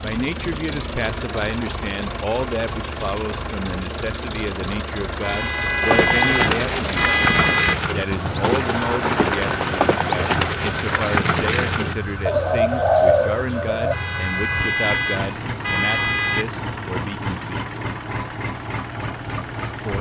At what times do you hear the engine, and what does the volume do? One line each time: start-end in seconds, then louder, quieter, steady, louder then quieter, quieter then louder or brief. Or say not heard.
0.0-19.9 steady.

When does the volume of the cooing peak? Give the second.
13 s.